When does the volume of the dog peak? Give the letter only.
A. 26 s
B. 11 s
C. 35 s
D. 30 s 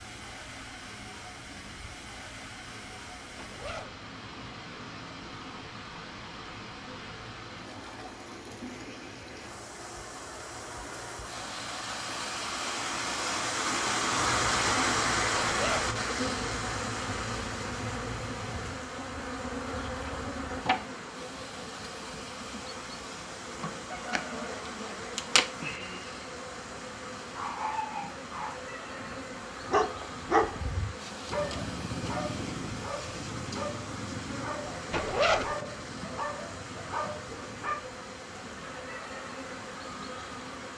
D.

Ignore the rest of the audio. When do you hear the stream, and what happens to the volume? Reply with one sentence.
You can hear the stream from 0.0 to 40.7 s, getting louder then quieter.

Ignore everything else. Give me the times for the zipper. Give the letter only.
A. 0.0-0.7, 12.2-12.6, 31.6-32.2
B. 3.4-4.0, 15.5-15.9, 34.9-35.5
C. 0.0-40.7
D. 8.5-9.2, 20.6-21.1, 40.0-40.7
B.